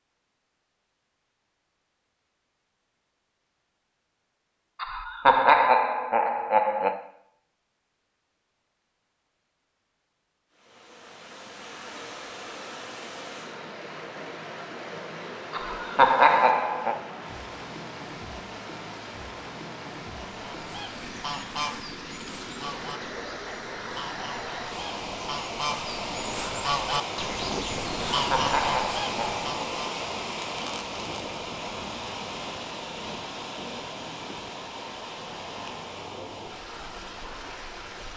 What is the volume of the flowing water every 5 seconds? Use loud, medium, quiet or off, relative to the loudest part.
off, off, medium, medium, medium, loud, loud, medium.